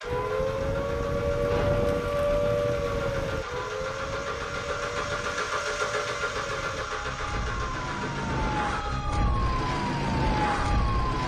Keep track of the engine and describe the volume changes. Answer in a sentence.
The loudness of the engine goes up, then down.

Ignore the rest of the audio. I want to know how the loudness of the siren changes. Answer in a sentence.
The loudness of the siren goes down, then up.